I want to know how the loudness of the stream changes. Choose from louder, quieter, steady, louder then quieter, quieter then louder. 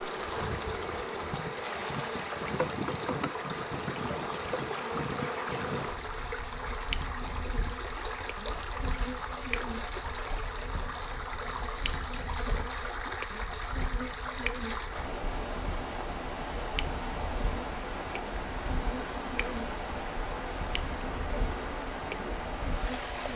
steady.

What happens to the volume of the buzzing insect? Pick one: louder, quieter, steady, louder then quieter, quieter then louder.
quieter.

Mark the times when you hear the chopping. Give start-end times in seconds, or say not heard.
not heard.